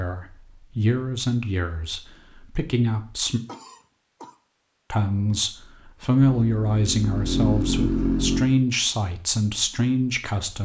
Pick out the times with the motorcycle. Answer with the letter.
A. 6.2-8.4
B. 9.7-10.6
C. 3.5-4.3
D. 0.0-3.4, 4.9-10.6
A.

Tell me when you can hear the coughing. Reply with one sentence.
The coughing can be heard from 3.5 to 4.3 s.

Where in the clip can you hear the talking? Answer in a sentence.
You can hear the talking from 0.0 to 3.4 s and from 4.9 to 10.6 s.